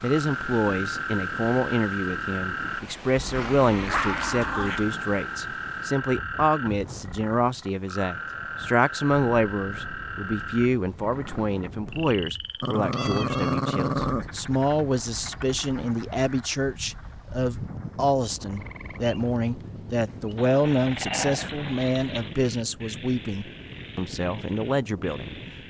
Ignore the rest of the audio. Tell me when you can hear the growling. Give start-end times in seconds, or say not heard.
3.2-4.9, 12.6-14.2, 20.4-22.3.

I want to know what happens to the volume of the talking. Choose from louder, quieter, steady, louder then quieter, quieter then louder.
steady.